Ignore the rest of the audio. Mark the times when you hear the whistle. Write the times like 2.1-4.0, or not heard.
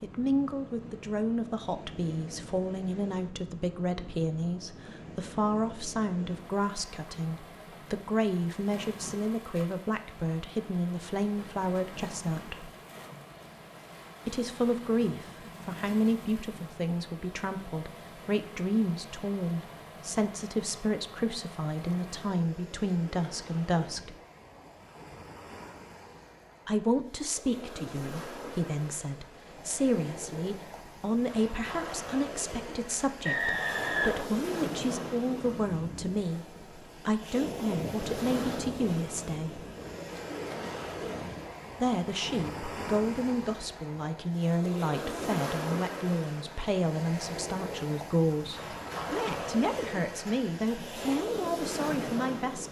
33.2-34.3.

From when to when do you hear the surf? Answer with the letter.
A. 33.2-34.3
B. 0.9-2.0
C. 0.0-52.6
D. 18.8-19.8
C.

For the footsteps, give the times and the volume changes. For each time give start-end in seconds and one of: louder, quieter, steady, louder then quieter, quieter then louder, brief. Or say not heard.
not heard.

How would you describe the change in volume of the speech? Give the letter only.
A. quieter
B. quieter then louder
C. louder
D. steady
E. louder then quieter
D.